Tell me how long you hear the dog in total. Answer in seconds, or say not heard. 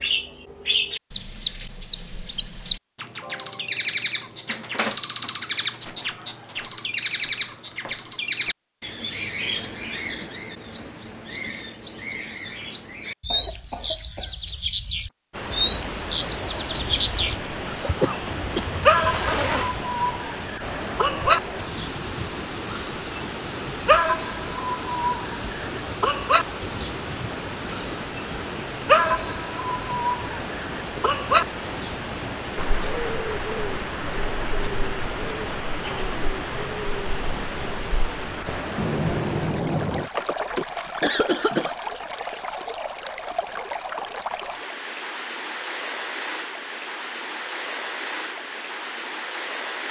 not heard.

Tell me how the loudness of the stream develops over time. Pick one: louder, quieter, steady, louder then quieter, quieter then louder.
steady.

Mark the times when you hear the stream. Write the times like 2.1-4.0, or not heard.
15.3-49.8.